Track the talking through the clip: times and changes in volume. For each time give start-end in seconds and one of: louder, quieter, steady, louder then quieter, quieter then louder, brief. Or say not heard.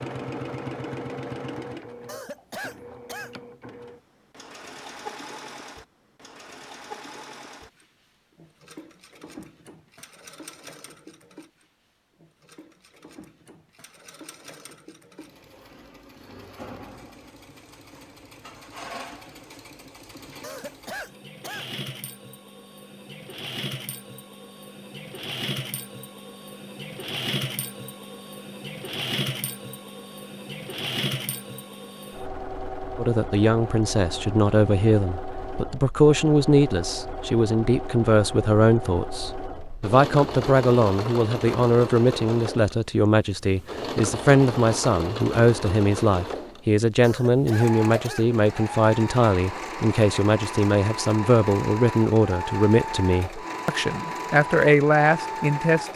33.0-55.9 steady.